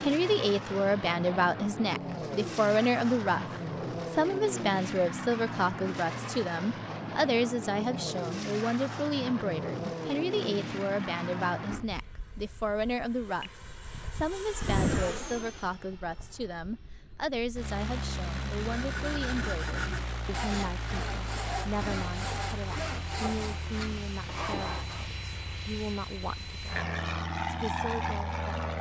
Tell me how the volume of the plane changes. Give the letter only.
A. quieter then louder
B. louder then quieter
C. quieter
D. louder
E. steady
E.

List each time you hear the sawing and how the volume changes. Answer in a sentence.
The sawing can be heard from 18.6 to 25.1 s, at a steady volume.